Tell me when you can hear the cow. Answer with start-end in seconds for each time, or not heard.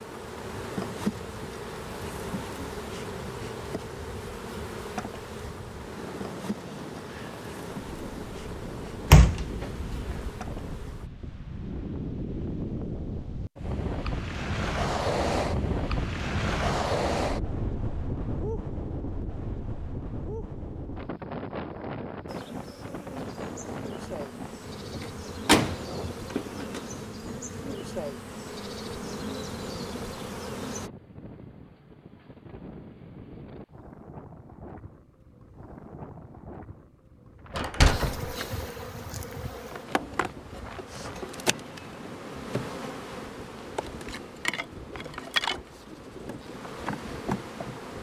not heard.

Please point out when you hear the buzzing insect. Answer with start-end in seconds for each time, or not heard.
0.0-11.1, 22.2-30.9, 37.9-47.9.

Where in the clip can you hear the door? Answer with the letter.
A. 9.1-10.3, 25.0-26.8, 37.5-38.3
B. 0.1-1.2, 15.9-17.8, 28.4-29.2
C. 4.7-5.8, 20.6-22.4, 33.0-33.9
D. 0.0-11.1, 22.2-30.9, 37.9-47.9
A.